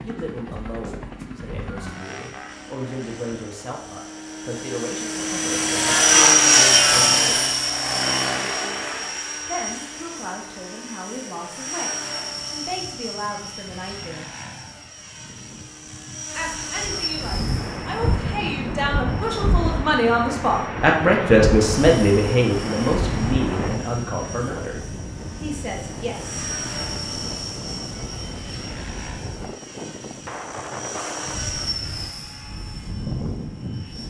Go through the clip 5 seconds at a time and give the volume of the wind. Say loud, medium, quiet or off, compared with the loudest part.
off, off, off, loud, loud, medium, medium.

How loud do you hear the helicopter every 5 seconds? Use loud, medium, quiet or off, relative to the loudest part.
quiet, loud, quiet, quiet, quiet, quiet, quiet.